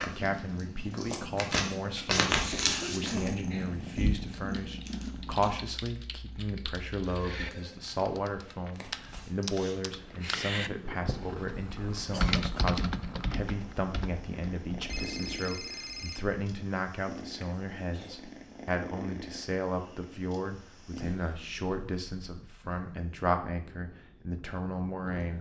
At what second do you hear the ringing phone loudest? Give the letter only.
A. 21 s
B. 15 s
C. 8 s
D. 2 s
B.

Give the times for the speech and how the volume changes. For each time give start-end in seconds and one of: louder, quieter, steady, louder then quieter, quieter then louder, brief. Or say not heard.
0.0-25.3 steady.